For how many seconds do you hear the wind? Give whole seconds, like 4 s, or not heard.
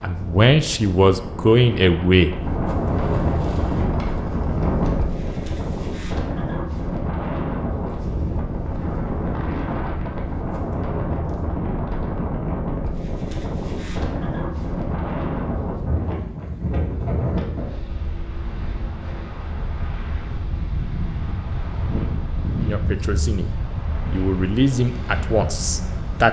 26 s.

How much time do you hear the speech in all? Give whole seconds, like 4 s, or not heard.
6 s.